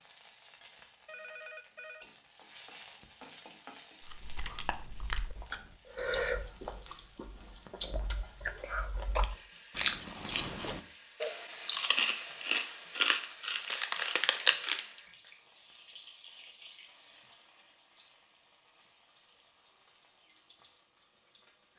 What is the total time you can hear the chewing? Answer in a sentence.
You can hear the chewing for 11 seconds altogether.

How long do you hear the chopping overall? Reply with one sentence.
You can't hear the chopping here.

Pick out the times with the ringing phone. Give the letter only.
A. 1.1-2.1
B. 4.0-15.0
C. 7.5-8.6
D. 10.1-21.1
A.